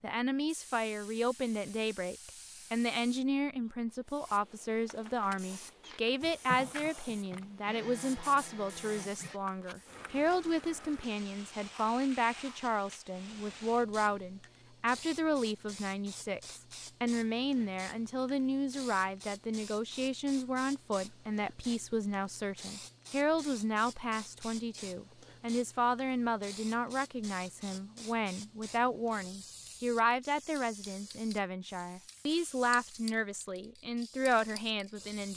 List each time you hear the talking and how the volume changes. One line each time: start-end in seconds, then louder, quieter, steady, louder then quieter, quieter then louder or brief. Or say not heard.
0.0-35.3 steady.